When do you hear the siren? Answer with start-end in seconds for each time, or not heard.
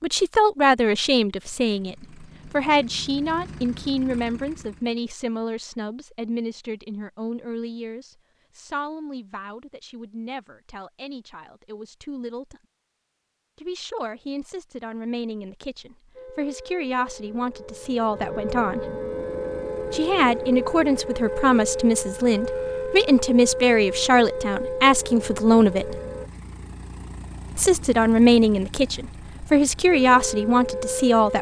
16.1-26.3, 29.9-31.3.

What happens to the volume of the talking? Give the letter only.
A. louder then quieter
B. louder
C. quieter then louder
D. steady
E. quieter
C.